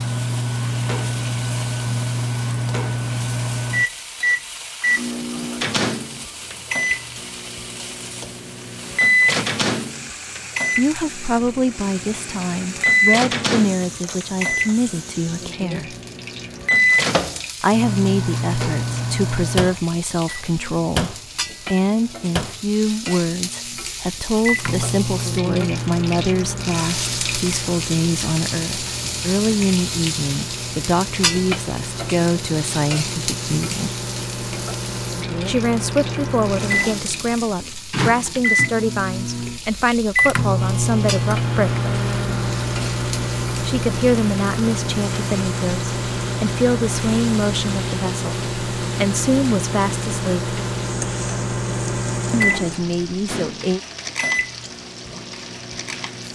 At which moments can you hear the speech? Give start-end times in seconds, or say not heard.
10.8-15.9, 17.6-33.9, 35.5-41.8, 43.6-50.5, 52.3-53.8.